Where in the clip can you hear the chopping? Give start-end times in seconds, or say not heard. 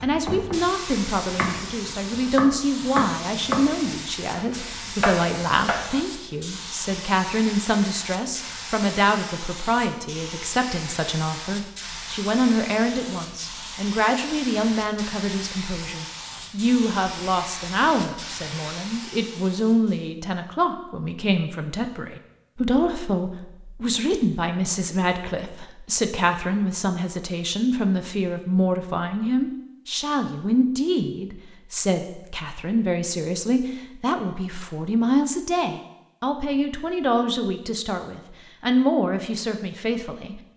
0.0-6.0.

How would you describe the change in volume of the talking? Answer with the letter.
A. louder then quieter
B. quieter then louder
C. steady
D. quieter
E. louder
C.